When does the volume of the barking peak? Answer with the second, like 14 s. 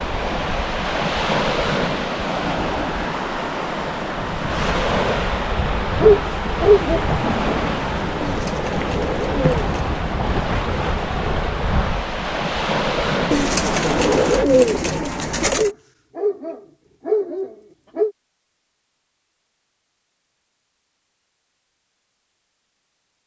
6 s.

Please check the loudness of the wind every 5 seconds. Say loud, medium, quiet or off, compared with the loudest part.
loud, loud, loud, off, off.